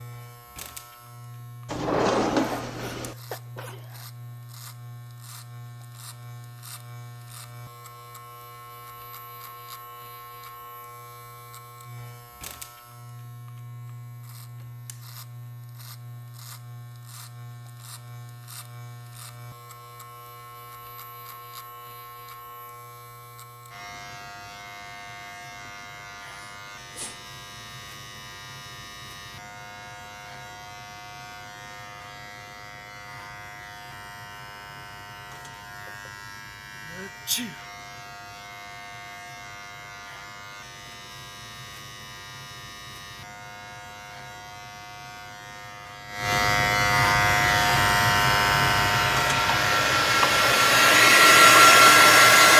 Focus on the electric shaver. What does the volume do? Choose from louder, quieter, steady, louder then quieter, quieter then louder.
louder.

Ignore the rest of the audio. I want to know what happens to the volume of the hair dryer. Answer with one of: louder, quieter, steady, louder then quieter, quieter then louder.
louder.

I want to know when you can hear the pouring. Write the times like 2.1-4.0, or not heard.
not heard.